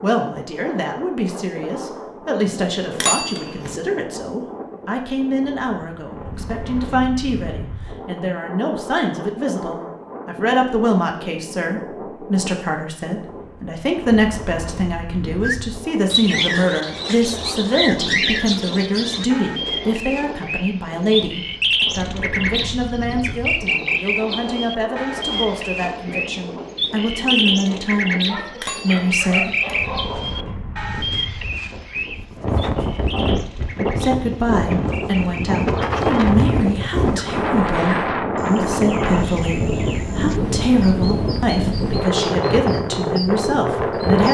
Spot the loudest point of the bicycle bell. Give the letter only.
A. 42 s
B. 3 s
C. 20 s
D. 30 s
B.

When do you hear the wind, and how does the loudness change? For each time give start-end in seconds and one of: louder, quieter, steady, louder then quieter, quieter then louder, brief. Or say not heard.
0.0-44.3 louder.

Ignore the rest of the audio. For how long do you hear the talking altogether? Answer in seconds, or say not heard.
40 s.